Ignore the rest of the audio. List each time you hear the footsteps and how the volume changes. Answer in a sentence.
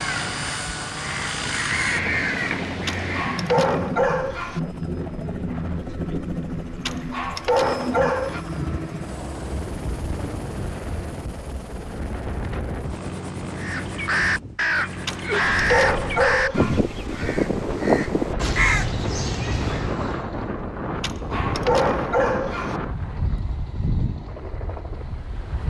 The footsteps can't be heard in this clip.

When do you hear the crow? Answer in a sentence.
The crow can be heard from 0.0 to 3.6 s and from 13.6 to 20.2 s.